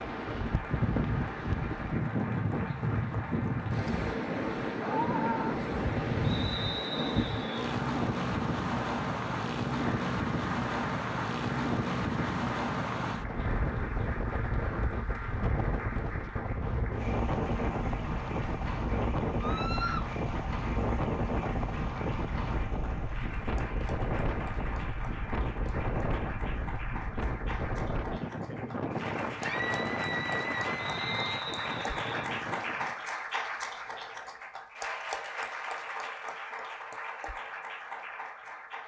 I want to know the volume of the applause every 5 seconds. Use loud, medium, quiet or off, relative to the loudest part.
medium, medium, medium, medium, medium, medium, loud, loud.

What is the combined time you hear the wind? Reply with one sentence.
You can hear the wind for 33 seconds altogether.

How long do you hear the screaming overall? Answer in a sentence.
You can hear the screaming for 3 seconds altogether.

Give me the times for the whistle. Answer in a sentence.
The whistle can be heard from 6.2 to 7.5 s and from 30.8 to 32.3 s.